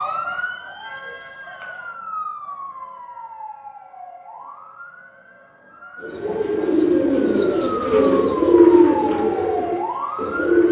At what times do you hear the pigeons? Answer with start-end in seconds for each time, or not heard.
6.0-10.6.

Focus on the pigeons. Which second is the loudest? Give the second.
9 s.